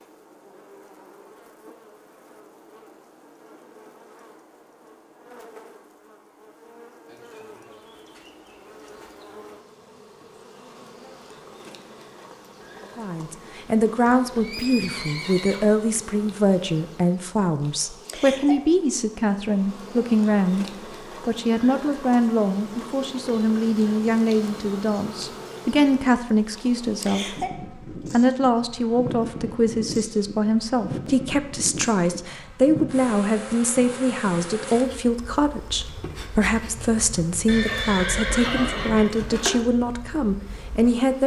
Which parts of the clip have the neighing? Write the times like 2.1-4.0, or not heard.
14.1-15.8, 37.5-39.5.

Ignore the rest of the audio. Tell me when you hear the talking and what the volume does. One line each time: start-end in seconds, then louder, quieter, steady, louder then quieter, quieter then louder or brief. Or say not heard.
12.9-41.2 steady.